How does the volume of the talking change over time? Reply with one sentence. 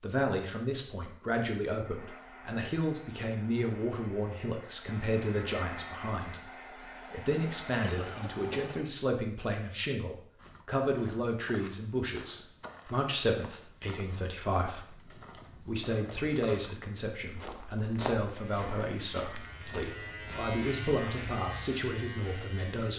The volume of the talking stays about the same.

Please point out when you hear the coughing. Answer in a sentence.
You can hear the coughing from 7.8 to 8.9 s.